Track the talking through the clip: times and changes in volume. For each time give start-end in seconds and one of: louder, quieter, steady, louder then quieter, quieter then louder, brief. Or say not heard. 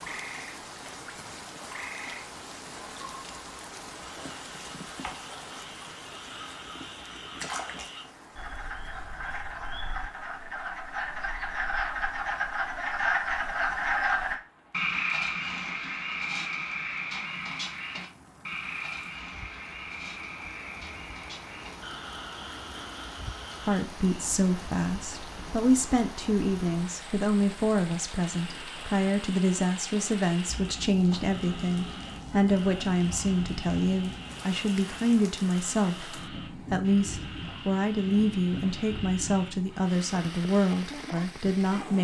23.6-41.9 steady.